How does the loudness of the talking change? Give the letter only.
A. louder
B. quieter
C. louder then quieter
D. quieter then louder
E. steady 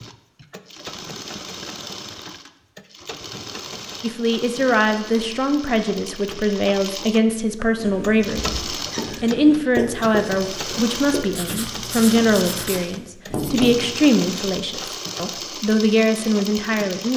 E.